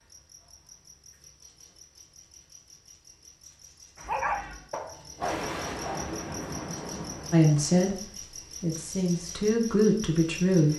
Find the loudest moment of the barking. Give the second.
4 s.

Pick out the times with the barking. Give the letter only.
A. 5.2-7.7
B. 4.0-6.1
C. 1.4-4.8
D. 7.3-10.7
B.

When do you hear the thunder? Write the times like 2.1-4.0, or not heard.
5.2-7.7.